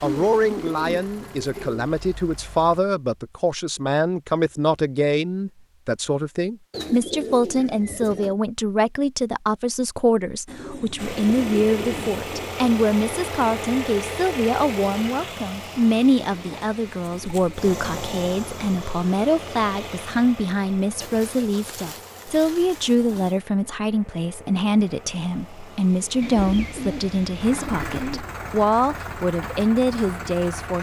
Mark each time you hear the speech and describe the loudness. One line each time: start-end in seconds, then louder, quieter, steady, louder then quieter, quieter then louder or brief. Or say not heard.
0.0-30.7 steady.